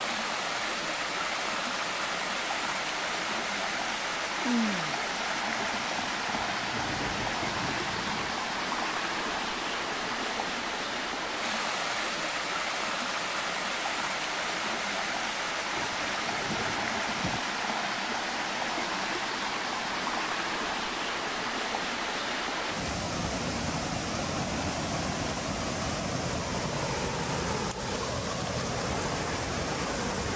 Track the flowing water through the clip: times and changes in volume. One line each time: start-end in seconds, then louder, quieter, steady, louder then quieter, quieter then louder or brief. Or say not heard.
0.0-30.3 steady.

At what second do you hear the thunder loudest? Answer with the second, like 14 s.
5 s.